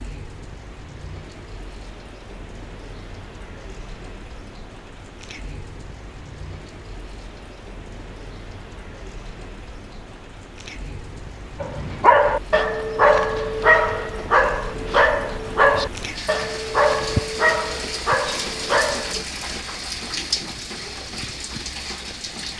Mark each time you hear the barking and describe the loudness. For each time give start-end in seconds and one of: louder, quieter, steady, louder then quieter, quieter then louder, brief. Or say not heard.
11.6-19.2 quieter.